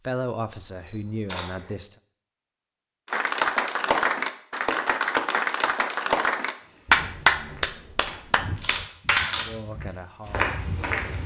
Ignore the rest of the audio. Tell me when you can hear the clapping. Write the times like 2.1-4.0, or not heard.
3.0-9.4.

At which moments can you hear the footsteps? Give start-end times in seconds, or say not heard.
6.6-11.2.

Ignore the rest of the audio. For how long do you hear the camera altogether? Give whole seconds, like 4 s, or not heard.
3 s.